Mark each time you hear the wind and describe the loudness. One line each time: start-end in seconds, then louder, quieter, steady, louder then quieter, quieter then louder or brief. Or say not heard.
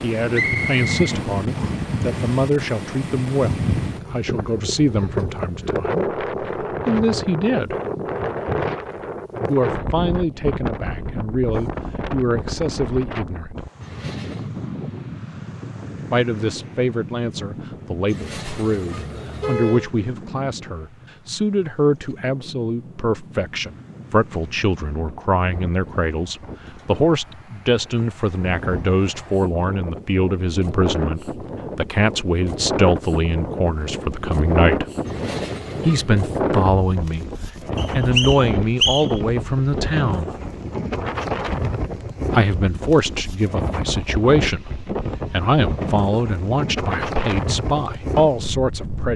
0.0-49.1 quieter then louder.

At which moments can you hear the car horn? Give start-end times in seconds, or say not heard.
13.8-14.5, 18.1-19.9, 35.0-36.2.